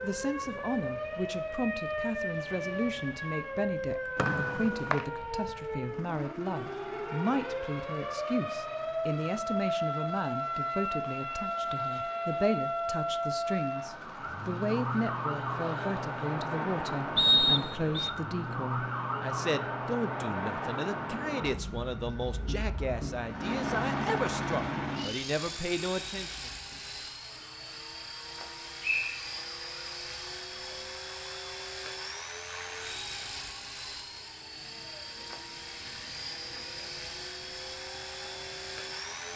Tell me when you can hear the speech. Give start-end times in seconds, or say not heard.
0.0-26.5.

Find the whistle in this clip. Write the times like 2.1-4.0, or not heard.
4.2-5.0, 17.1-18.1, 28.8-29.4.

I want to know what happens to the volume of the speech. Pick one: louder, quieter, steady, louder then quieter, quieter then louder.
steady.